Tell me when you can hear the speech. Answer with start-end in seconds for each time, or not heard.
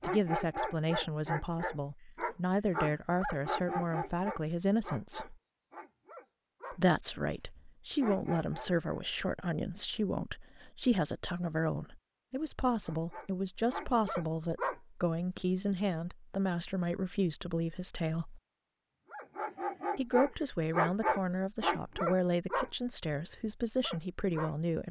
0.0-5.3, 6.7-18.4, 19.9-24.8.